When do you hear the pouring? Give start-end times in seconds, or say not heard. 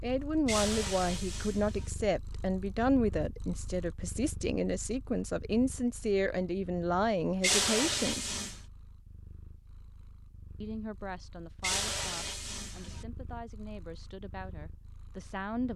0.5-1.9, 7.4-8.6, 11.6-13.1.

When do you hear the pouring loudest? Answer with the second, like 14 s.
8 s.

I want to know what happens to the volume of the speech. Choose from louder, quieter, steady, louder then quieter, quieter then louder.
quieter.